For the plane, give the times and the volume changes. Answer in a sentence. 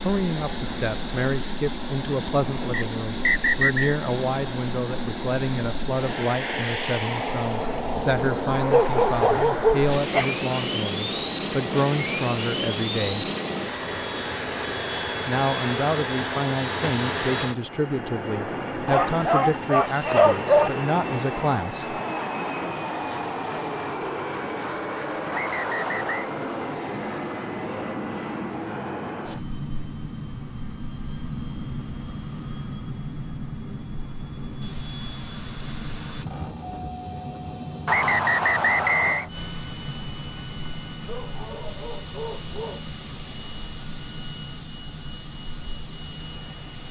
You can hear the plane from 0.0 to 46.8 s, getting quieter.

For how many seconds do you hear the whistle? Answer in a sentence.
You can hear the whistle for 4 seconds altogether.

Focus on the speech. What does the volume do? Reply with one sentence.
The loudness of the speech stays about the same.